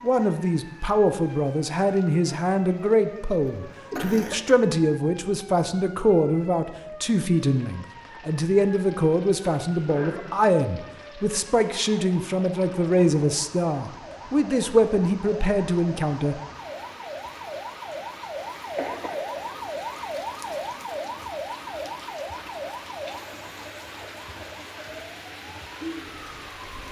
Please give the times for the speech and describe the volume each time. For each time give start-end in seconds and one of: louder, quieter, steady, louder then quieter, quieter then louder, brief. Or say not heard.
0.0-16.4 steady.